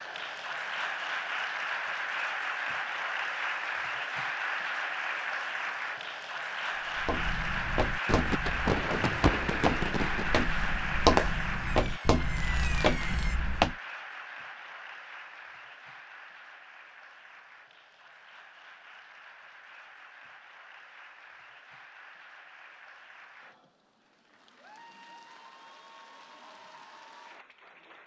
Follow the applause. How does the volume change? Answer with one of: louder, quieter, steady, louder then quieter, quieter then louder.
quieter.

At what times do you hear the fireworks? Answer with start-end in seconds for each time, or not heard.
8.1-13.4.